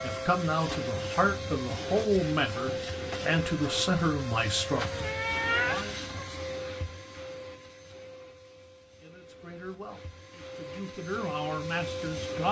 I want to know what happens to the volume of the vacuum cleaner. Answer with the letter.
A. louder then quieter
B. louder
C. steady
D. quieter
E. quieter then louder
E.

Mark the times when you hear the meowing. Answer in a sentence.
You can hear the meowing from 4.9 to 6.2 s.